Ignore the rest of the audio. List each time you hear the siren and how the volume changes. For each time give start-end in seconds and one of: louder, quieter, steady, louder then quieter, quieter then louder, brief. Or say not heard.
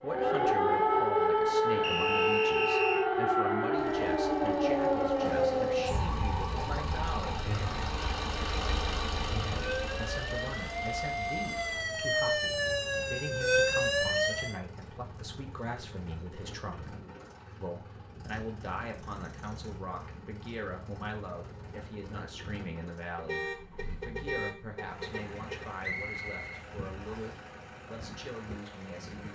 0.0-14.6 quieter then louder.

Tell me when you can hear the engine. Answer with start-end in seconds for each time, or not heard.
3.8-29.3.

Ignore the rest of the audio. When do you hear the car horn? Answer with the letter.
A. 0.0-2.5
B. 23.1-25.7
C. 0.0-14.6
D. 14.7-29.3
B.